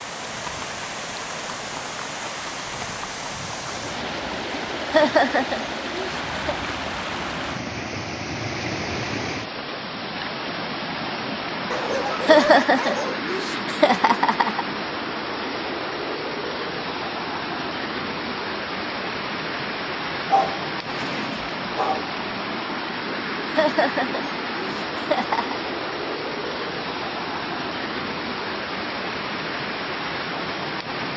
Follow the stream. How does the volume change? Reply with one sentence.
The volume of the stream stays about the same.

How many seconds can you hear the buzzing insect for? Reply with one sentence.
You can't hear the buzzing insect here.